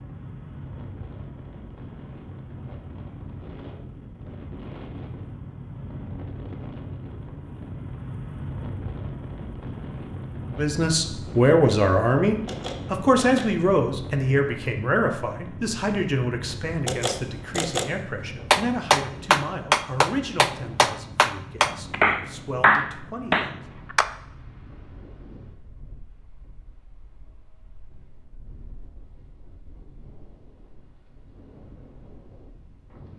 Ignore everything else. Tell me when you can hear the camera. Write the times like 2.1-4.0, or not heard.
12.4-13.5, 16.9-17.9.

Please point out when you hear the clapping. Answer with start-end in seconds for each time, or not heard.
18.5-24.1.